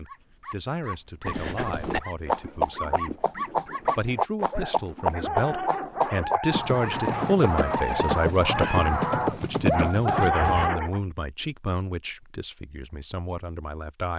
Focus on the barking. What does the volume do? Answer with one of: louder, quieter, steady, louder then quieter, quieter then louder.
louder.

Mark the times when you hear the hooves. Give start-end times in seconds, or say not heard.
1.2-10.7.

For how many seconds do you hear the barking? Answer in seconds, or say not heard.
11 s.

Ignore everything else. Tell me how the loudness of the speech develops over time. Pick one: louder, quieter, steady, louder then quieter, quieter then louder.
louder then quieter.